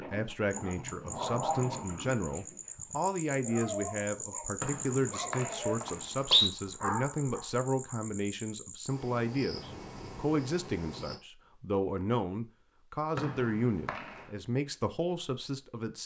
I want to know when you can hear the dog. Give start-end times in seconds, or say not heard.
0.0-8.0.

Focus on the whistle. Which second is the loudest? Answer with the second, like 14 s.
6 s.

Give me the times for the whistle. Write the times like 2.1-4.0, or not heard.
4.6-6.5, 13.2-14.2.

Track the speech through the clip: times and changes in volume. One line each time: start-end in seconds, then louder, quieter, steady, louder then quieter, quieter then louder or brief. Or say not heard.
0.0-16.0 steady.